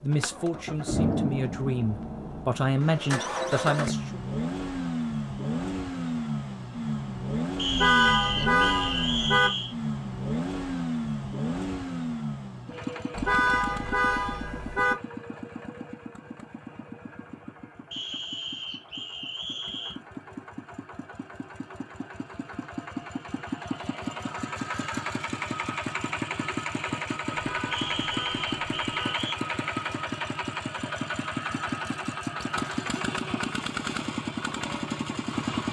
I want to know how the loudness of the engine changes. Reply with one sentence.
The volume of the engine goes down, then up.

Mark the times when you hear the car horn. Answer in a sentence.
The car horn can be heard from 7.7 to 9.5 s, from 13.1 to 14.9 s and from 27.3 to 29.1 s.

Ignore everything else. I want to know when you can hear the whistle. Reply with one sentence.
The whistle can be heard from 7.5 to 9.8 s, from 17.9 to 20.0 s and from 27.7 to 29.4 s.